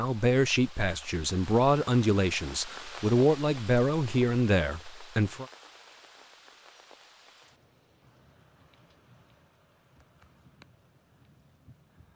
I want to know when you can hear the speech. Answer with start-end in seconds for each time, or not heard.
0.0-5.5.